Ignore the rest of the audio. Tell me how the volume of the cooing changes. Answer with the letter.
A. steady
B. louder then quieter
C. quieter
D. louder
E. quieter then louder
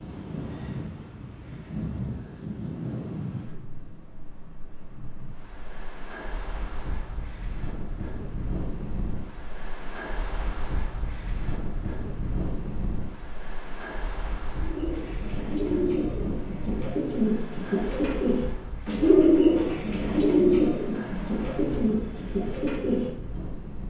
B.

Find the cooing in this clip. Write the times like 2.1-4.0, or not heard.
14.6-23.1.